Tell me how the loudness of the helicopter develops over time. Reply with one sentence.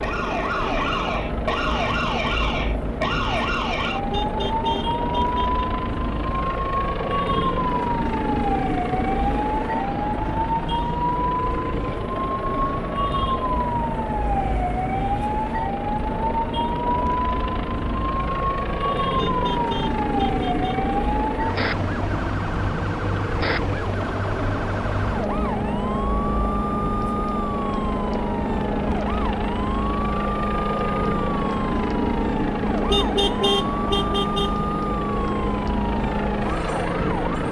The loudness of the helicopter stays about the same.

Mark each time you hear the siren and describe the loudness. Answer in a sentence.
The siren can be heard from 0.0 to 37.4 s, at a steady volume.